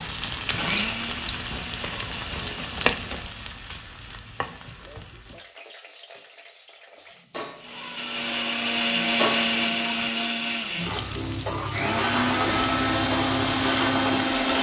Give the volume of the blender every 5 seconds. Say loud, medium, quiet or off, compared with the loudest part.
medium, loud, loud.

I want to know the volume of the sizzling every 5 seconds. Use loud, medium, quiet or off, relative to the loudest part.
loud, medium, loud.